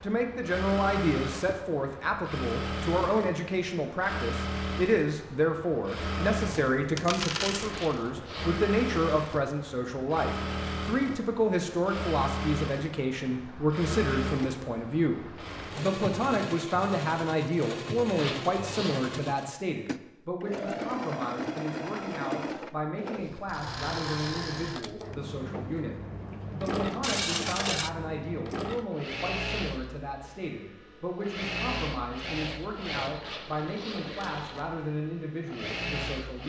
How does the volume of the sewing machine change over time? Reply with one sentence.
The volume of the sewing machine stays about the same.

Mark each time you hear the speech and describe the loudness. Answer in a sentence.
The speech can be heard from 0.0 to 36.4 s, getting quieter.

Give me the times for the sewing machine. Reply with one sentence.
You can hear the sewing machine from 0.0 to 36.4 s.